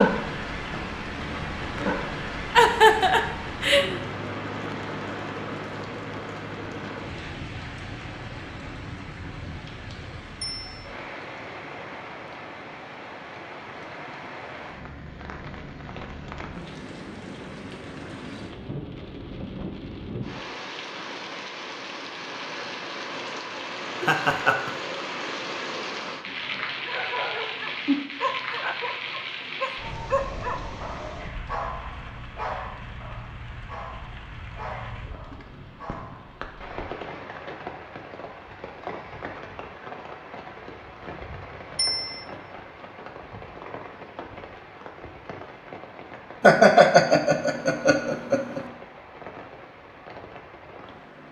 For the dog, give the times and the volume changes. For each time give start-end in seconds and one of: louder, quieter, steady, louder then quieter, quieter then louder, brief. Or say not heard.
26.1-36.5 quieter.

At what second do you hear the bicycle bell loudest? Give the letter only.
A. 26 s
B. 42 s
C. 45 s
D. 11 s
B.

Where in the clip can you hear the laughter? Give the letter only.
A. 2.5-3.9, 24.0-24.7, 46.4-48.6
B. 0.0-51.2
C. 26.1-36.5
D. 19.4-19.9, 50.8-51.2
A.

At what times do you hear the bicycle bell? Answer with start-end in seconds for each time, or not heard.
10.4-10.8, 41.8-42.2.